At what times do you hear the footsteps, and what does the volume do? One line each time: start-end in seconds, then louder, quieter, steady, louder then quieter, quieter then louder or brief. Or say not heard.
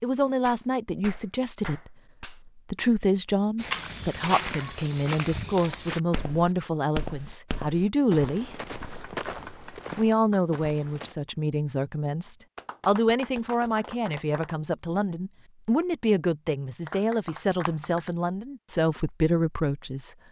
3.5-11.2 quieter.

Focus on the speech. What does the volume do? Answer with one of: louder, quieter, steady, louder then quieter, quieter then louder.
steady.